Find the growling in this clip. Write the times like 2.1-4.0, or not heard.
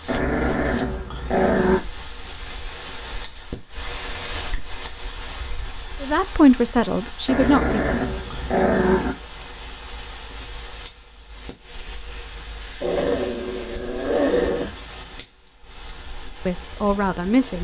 0.1-1.9, 7.2-9.2, 12.8-14.8.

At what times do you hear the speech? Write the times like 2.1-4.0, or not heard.
6.0-8.0, 16.4-17.5.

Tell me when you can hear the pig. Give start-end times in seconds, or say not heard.
not heard.